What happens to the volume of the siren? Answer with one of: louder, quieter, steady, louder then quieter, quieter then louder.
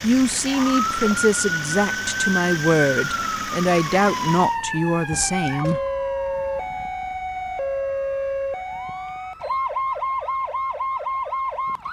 steady.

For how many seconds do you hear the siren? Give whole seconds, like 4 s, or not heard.
12 s.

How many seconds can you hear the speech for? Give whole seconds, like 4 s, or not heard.
6 s.